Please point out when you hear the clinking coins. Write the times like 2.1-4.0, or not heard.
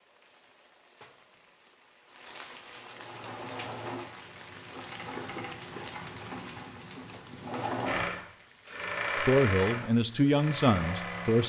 not heard.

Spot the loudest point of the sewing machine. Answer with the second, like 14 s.
9 s.